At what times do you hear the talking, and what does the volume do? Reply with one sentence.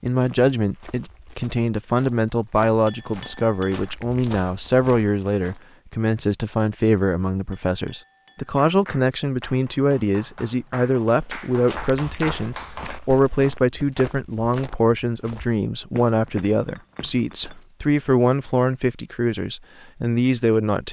You can hear the talking from 0.0 to 20.8 s, at a steady volume.